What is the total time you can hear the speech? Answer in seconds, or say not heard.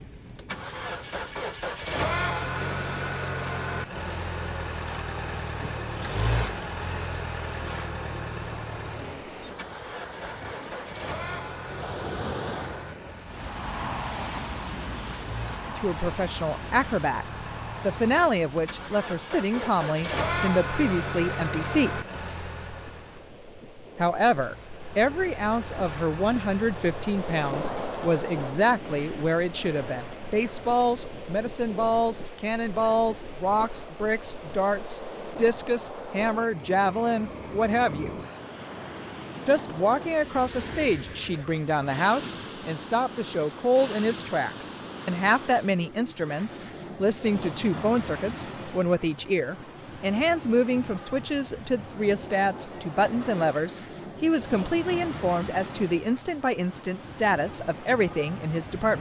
40 s.